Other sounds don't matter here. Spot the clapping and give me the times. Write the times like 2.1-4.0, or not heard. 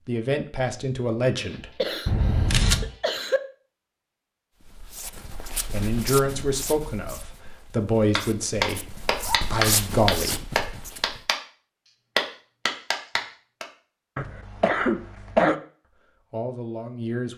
8.2-11.4, 12.2-13.7.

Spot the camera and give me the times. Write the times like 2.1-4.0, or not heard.
2.0-2.9.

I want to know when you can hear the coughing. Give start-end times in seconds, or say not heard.
1.4-3.4, 14.2-15.6.